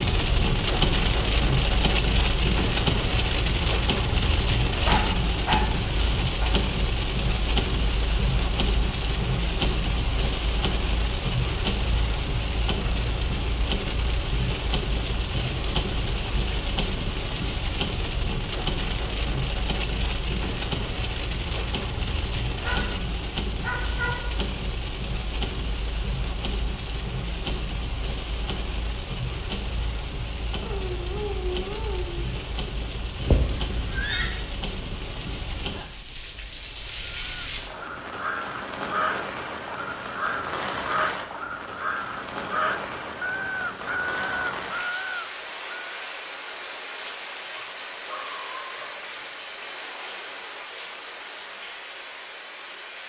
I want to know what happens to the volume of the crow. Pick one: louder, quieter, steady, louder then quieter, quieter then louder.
steady.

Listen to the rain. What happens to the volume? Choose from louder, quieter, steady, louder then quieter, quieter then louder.
quieter.